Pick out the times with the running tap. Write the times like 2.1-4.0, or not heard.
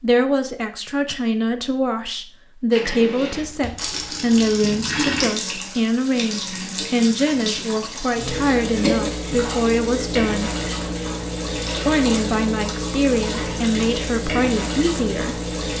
2.7-15.7.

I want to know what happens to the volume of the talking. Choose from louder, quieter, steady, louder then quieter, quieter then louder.
steady.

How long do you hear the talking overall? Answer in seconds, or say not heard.
14 s.